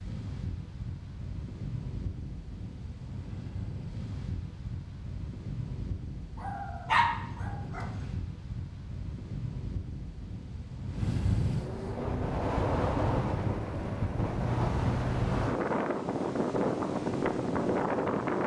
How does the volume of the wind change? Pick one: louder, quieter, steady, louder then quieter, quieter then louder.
louder.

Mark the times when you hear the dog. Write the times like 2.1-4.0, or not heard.
6.3-7.9.